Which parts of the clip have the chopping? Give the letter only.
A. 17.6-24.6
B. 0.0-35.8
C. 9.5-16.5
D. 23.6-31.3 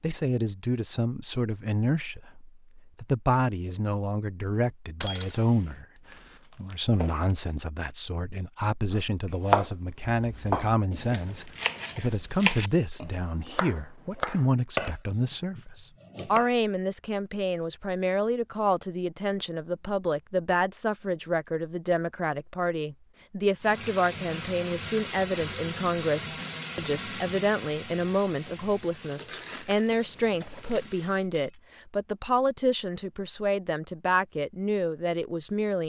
C.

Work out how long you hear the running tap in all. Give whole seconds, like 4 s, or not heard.
8 s.